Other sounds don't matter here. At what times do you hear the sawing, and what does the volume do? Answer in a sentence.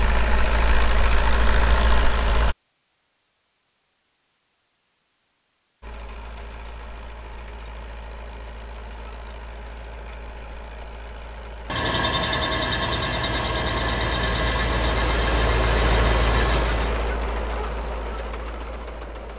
You can hear the sawing from 11.7 to 17.1 s, at a steady volume.